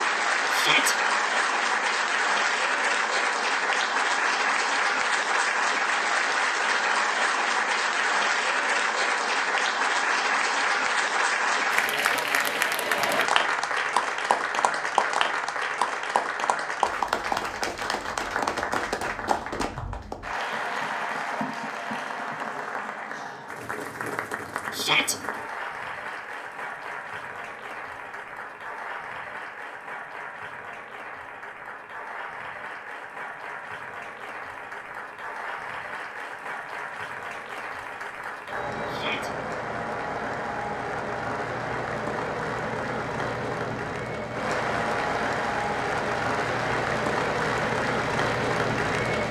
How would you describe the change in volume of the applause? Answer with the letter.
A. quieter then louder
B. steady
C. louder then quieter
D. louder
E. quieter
A.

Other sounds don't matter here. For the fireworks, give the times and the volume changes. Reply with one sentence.
You can't hear the fireworks here.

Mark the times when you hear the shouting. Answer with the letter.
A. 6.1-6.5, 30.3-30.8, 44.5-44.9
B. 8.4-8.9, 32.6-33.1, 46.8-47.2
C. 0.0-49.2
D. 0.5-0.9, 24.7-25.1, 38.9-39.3
D.